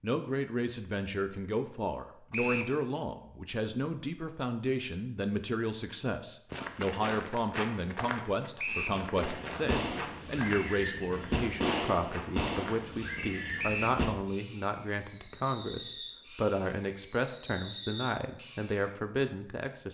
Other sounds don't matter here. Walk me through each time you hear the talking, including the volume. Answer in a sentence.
You can hear the talking from 0.0 to 19.8 s, at a steady volume.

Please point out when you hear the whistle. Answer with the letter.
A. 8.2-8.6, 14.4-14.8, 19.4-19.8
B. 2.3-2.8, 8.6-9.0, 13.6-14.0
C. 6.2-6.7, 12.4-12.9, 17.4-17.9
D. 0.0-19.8
B.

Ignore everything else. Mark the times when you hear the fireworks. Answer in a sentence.
The fireworks can be heard from 9.2 to 18.9 s.